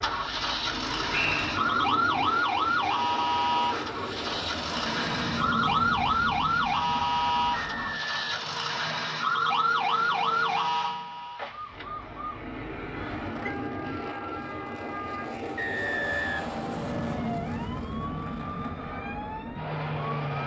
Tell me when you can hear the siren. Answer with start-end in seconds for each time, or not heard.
0.0-20.4.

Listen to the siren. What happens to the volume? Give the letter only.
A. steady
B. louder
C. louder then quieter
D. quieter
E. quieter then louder
D.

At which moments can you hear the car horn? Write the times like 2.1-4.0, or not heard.
not heard.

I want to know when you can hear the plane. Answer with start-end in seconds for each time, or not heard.
0.0-20.4.